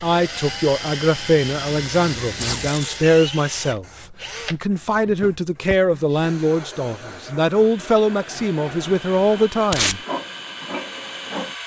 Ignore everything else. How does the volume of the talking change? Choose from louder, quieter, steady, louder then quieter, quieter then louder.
steady.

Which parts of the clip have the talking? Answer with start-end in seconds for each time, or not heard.
0.0-10.0.